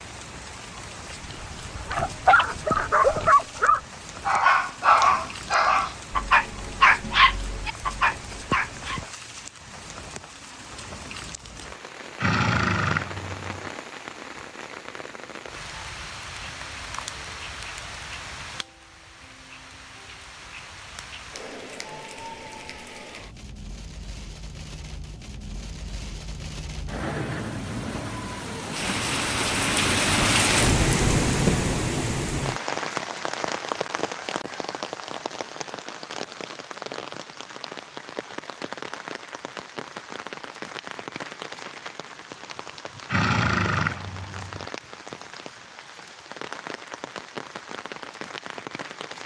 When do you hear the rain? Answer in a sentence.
The rain can be heard from 0.0 to 49.2 s.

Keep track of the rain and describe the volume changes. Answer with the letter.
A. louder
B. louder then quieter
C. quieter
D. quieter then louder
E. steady
B.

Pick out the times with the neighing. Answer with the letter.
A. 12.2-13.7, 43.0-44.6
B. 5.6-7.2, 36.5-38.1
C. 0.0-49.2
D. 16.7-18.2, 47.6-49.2
A.